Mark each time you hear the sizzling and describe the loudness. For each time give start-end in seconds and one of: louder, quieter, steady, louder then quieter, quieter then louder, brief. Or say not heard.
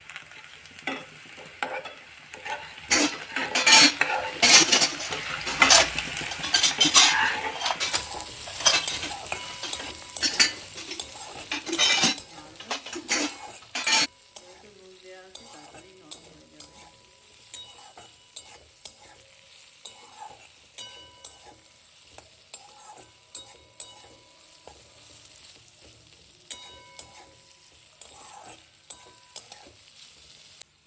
0.0-30.8 quieter.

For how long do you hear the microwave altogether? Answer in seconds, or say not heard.
not heard.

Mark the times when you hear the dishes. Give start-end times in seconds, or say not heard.
2.9-14.1.